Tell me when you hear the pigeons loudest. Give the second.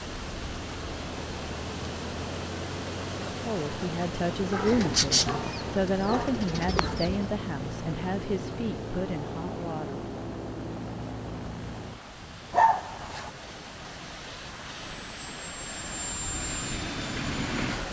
5 s.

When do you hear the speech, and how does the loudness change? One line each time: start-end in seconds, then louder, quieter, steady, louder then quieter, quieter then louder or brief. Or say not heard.
3.4-10.1 quieter.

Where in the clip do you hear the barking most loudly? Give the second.
13 s.